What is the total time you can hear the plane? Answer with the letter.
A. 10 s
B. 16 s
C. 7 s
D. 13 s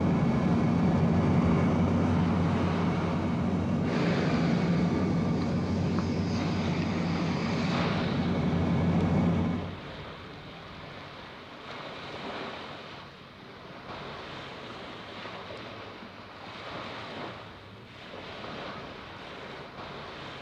A.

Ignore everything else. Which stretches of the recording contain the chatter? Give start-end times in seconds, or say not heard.
not heard.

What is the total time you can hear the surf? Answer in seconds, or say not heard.
20 s.